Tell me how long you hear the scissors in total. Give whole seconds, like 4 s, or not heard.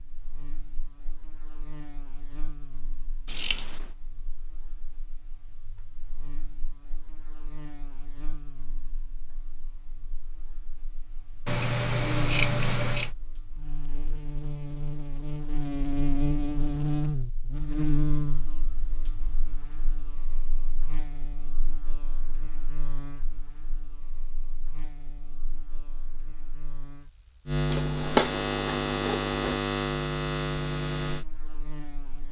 4 s.